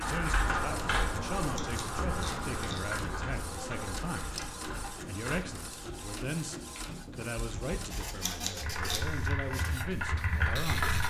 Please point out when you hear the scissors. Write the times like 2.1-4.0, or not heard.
1.4-2.8, 8.1-9.3.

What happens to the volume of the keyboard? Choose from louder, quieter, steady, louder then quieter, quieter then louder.
quieter then louder.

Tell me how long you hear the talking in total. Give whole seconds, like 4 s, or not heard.
11 s.